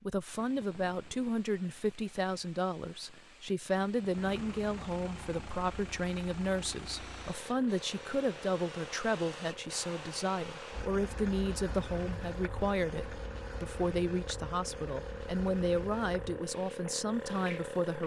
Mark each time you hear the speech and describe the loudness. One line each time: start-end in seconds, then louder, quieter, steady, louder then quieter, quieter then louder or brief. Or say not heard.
0.0-18.0 steady.